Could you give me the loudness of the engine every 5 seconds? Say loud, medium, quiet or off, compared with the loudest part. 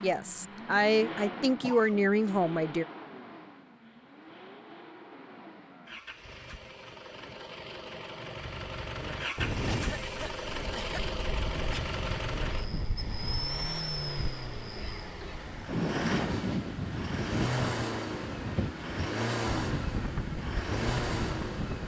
medium, medium, loud, loud, loud.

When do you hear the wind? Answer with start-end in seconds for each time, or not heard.
9.3-21.8.